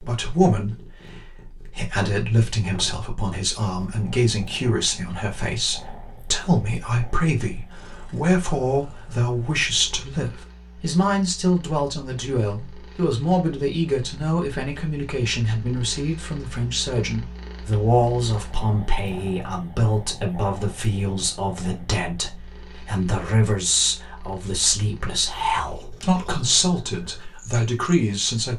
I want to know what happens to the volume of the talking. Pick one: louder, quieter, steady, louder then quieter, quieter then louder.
steady.